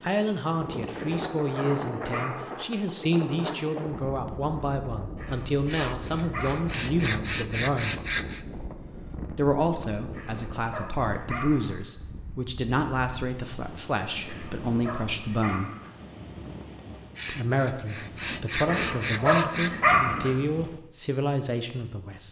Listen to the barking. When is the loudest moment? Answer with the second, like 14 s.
20 s.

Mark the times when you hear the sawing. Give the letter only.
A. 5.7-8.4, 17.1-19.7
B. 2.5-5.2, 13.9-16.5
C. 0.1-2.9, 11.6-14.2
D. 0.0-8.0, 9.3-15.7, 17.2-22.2
A.